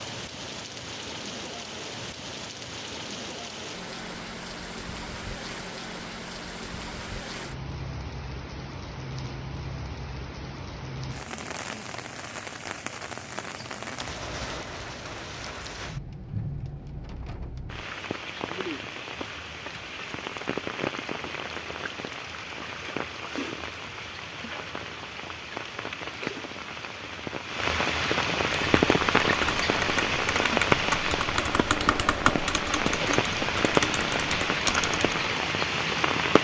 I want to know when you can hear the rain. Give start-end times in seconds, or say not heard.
0.0-36.3.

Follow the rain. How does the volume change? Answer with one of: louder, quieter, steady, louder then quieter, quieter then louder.
louder.